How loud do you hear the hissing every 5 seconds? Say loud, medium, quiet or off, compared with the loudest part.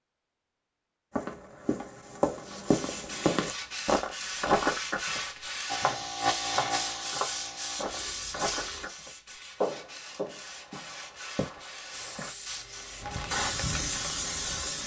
off, loud, loud.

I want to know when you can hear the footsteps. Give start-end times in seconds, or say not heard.
1.1-5.2, 5.8-12.3.